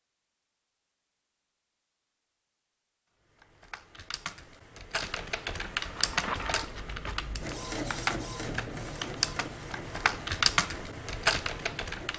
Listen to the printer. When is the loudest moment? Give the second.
8 s.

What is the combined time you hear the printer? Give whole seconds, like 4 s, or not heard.
6 s.